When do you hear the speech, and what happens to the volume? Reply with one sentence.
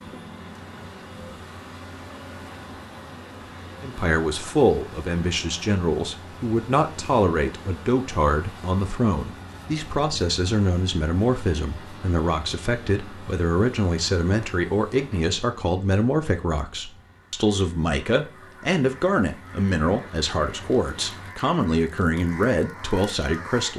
You can hear the speech from 3.8 to 23.7 s, at a steady volume.